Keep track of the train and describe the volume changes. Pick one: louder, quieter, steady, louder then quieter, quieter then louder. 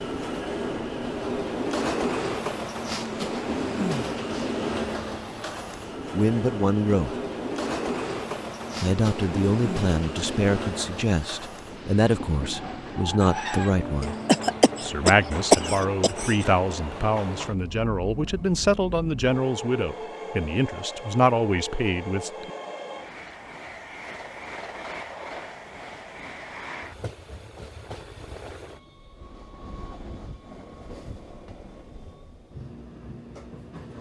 quieter.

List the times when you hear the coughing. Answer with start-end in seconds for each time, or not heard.
14.0-16.8.